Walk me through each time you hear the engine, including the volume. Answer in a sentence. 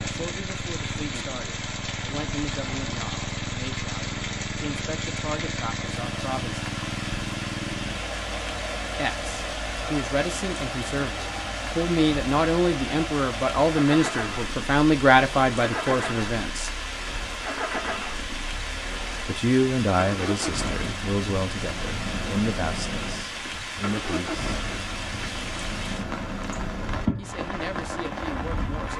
The engine can be heard from 0.0 to 28.9 s, at a steady volume.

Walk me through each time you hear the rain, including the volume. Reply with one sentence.
The rain can be heard from 0.0 to 28.9 s, at a steady volume.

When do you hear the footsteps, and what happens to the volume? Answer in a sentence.
The footsteps can't be heard in this clip.